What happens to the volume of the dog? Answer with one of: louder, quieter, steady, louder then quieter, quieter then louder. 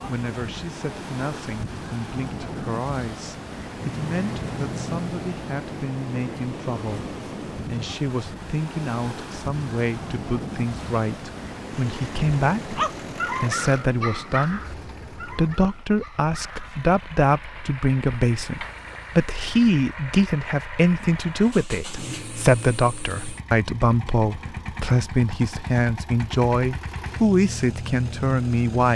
quieter.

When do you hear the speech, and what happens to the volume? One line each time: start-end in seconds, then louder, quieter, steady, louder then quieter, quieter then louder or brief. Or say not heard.
0.1-28.9 louder.